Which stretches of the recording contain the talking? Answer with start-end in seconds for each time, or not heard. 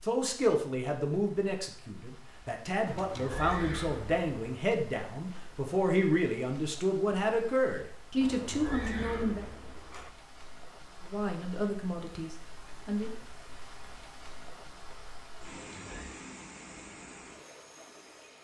0.0-9.4, 11.0-13.2.